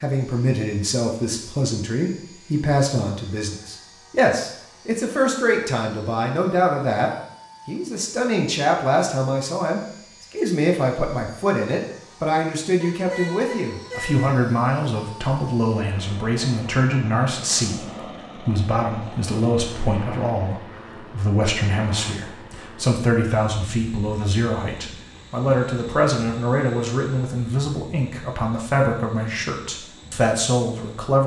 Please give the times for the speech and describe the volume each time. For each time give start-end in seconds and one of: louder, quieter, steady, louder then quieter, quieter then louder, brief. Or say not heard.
0.0-31.2 steady.